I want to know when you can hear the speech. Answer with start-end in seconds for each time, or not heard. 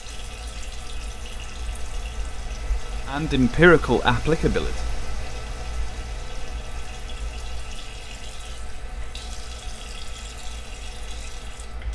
3.0-4.7.